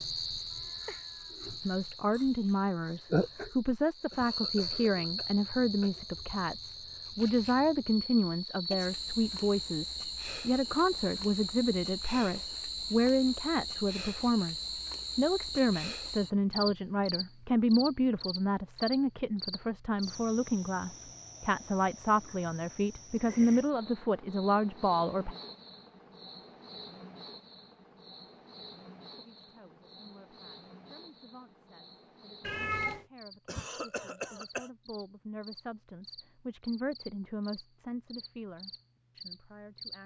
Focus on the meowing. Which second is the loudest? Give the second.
33 s.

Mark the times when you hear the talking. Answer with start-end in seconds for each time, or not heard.
1.6-25.4, 29.1-40.0.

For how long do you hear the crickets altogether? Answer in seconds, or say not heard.
40 s.